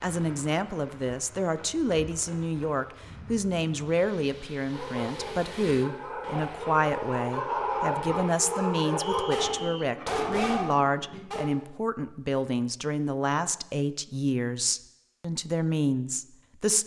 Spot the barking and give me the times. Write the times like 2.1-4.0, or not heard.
4.7-11.5.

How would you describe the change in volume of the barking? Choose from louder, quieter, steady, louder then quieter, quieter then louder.
louder.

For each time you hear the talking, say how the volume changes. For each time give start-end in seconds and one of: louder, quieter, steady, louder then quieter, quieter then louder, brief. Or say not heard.
0.0-16.8 steady.